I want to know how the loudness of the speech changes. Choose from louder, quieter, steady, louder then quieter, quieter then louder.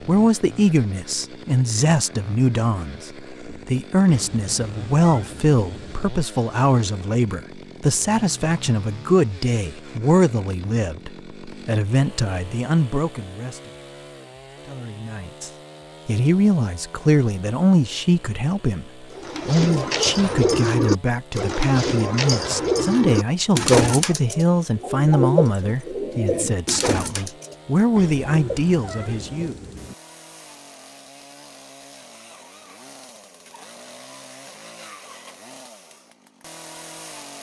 steady.